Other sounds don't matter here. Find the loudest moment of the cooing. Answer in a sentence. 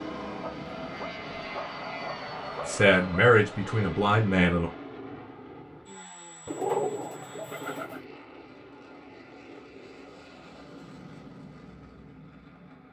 The volume of the cooing peaks at 7 seconds.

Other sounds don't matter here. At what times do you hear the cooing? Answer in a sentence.
You can hear the cooing from 6.5 to 8.0 s.